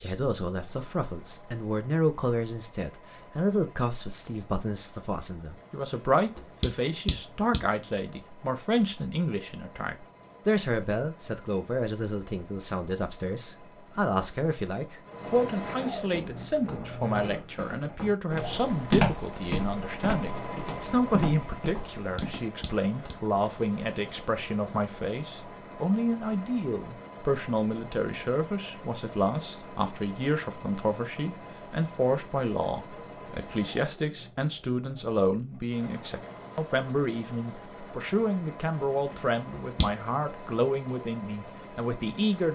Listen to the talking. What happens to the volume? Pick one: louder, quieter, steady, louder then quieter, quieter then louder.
steady.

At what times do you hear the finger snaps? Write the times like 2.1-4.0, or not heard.
6.3-7.6, 21.9-23.1, 39.1-39.9.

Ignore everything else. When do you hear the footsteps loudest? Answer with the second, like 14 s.
19 s.